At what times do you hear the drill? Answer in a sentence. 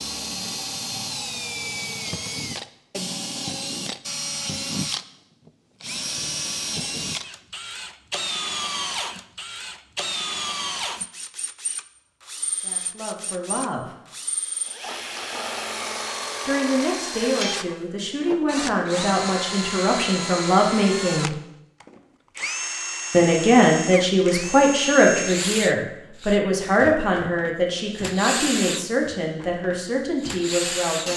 The drill can be heard from 0.0 to 31.1 s.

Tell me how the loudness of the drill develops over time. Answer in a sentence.
The volume of the drill stays about the same.